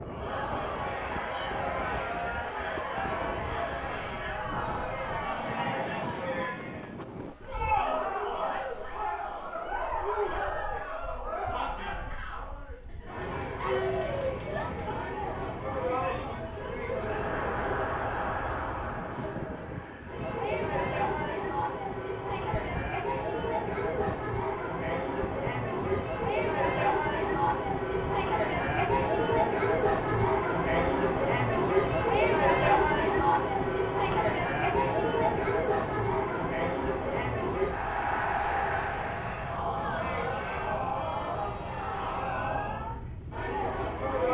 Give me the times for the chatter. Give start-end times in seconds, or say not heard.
0.0-44.2.